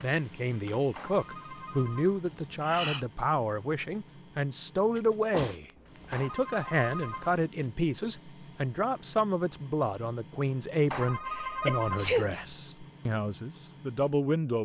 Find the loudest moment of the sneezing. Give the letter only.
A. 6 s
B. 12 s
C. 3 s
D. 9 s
B.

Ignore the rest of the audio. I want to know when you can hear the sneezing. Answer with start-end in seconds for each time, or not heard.
2.2-3.0, 5.0-6.2, 11.2-12.2.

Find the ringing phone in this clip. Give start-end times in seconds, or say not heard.
0.9-2.1, 6.1-7.4, 10.9-12.2.